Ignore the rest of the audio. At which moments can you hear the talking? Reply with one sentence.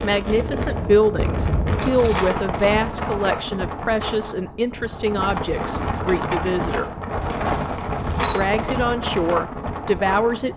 You can hear the talking from 0.0 to 6.9 s and from 8.3 to 10.5 s.